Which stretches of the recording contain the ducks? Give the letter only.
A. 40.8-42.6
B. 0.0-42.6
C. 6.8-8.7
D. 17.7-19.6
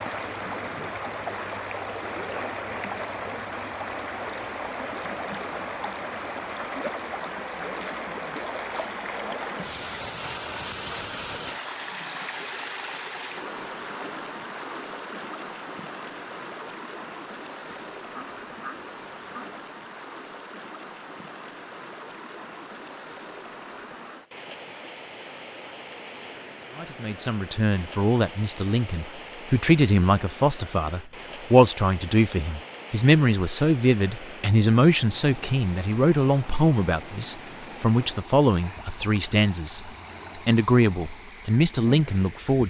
D.